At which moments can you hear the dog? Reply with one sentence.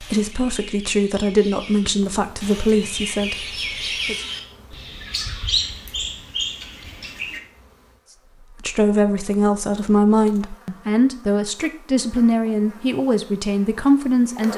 You can't hear the dog here.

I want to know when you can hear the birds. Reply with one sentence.
The birds can be heard from 0.0 to 7.4 s.